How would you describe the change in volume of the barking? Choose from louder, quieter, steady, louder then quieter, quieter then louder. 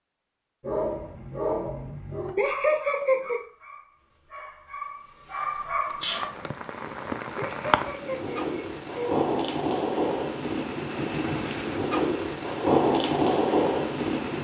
quieter then louder.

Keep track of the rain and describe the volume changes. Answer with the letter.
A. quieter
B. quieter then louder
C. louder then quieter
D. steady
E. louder
E.